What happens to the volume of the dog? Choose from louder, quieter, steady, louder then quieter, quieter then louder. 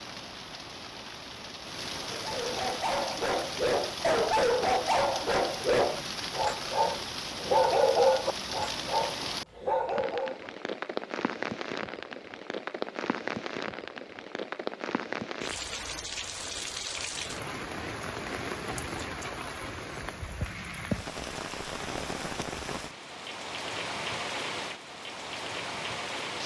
louder then quieter.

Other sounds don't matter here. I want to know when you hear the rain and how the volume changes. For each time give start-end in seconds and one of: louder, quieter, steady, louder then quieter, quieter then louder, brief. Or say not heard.
0.0-26.4 steady.